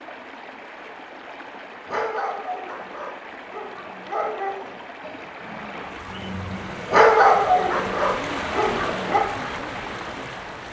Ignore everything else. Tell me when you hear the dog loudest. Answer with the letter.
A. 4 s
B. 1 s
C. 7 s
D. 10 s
C.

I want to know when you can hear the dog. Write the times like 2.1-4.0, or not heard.
1.9-9.2.